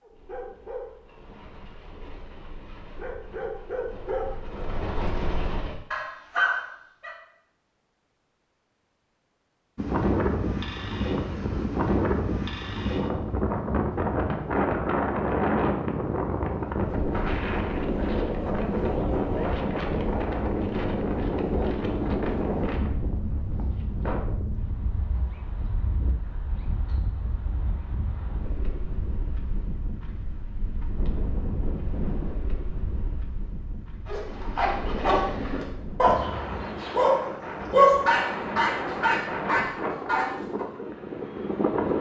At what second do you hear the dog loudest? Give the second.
38 s.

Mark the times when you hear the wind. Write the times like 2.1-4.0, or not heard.
9.8-41.9.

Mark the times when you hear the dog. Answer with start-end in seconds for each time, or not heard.
0.0-7.2, 34.0-40.6.